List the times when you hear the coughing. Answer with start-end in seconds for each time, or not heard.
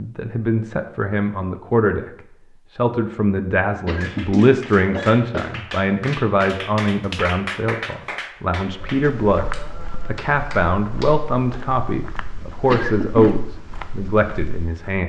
3.9-5.6, 12.7-13.4.